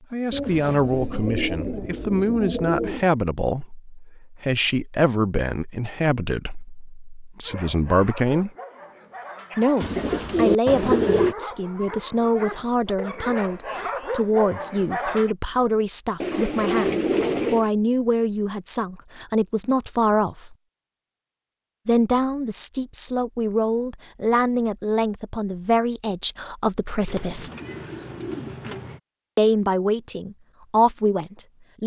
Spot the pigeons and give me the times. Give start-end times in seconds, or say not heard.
0.3-3.1, 9.8-11.3, 16.2-17.6, 27.1-29.0.